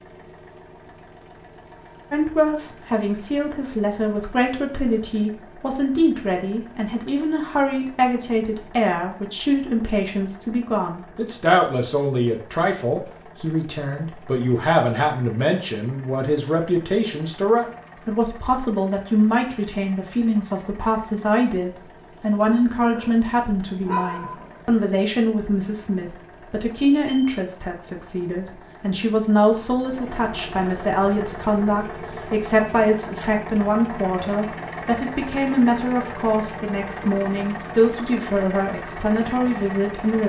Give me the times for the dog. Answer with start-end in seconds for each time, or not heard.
22.9-24.7.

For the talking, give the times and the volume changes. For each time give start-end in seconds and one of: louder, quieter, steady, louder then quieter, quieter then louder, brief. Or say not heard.
2.1-40.2 steady.